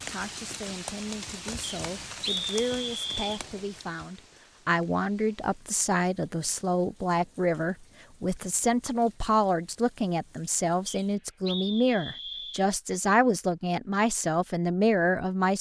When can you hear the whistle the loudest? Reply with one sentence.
The loudest moment of the whistle is at 2 seconds.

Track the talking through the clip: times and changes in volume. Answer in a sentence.
The talking can be heard from 0.1 to 15.5 s, getting louder.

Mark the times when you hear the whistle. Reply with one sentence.
The whistle can be heard from 1.6 to 3.4 s and from 10.8 to 12.7 s.